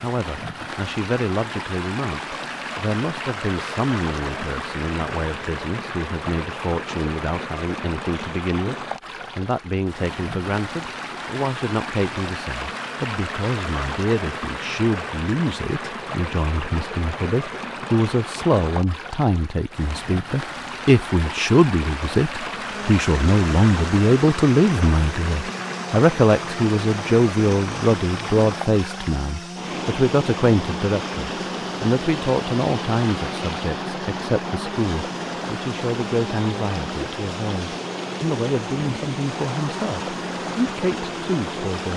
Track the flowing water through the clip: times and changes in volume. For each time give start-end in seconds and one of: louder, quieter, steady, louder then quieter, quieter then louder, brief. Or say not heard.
0.0-41.9 steady.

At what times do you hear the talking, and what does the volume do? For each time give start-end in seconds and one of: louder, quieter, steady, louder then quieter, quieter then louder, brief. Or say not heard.
0.0-8.8 steady
9.3-41.9 louder then quieter.